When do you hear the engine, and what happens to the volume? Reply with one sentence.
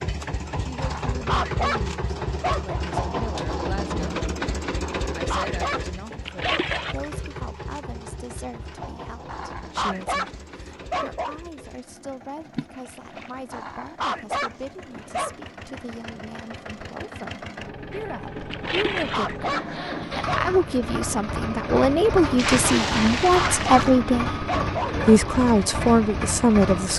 You can hear the engine from 0.0 to 26.9 s, getting quieter then louder.